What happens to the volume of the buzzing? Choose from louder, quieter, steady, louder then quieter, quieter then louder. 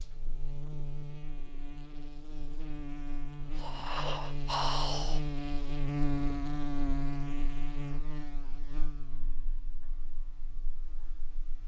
louder then quieter.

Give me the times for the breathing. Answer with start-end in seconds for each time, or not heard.
3.4-5.2.